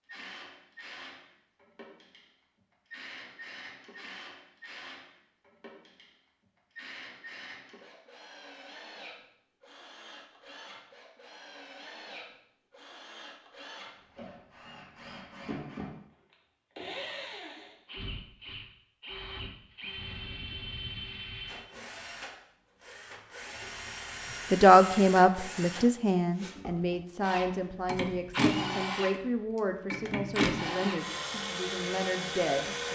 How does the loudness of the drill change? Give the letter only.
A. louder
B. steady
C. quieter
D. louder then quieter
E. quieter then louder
A.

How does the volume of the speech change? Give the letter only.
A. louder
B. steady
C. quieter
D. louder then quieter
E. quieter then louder
C.